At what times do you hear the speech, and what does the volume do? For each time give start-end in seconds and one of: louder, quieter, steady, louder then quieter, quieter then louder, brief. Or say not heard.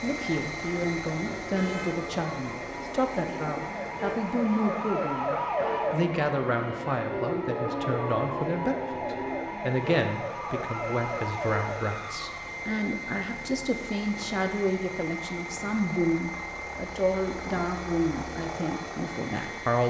0.0-19.8 steady.